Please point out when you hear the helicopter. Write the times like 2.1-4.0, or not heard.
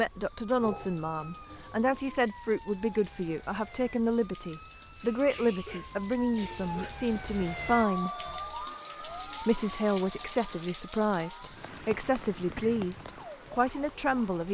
not heard.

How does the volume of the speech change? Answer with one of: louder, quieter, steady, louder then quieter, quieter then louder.
steady.